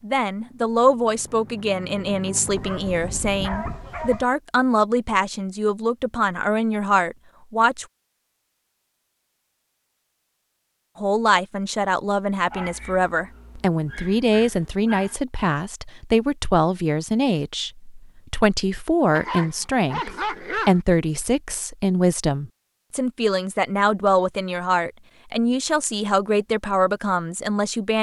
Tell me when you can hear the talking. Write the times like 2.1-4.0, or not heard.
0.0-7.8, 10.9-27.9.